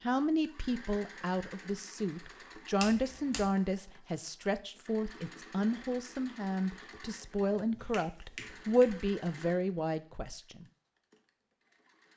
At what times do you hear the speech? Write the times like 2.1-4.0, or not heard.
0.0-10.7.